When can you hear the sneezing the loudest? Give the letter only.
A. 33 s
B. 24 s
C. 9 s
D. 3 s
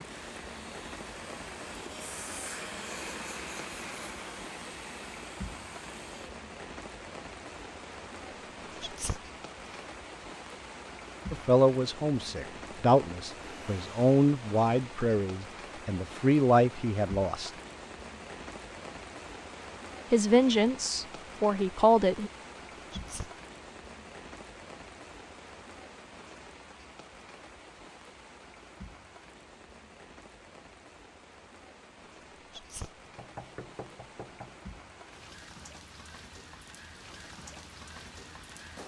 C.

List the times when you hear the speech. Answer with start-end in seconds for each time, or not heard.
11.3-17.5, 20.1-22.3.